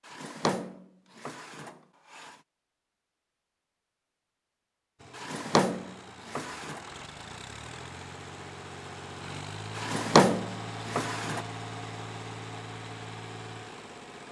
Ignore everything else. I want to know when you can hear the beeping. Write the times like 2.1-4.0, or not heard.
not heard.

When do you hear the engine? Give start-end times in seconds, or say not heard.
5.0-14.2.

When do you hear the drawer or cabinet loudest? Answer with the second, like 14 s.
10 s.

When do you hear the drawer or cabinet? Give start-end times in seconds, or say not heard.
0.1-2.4, 5.2-6.8, 9.8-11.4.